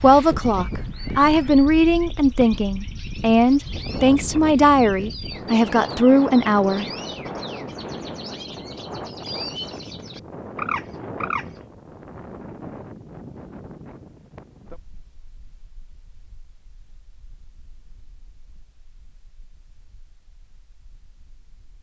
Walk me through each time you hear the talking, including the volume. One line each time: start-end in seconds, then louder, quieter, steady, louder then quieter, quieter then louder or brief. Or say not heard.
0.0-6.8 steady.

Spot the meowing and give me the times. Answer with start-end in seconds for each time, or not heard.
not heard.